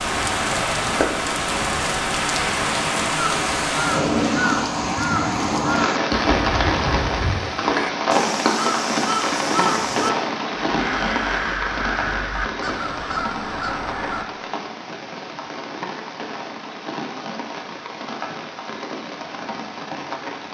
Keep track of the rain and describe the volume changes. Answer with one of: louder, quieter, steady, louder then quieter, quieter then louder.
quieter.